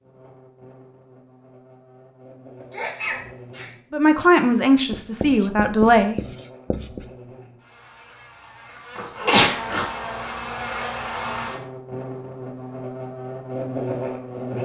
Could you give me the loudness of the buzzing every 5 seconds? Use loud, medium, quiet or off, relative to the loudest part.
quiet, medium, loud.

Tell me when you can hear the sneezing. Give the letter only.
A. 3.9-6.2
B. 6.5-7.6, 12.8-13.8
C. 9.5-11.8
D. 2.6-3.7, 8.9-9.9
D.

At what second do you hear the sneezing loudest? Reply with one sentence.
The loudest moment of the sneezing is at 9 seconds.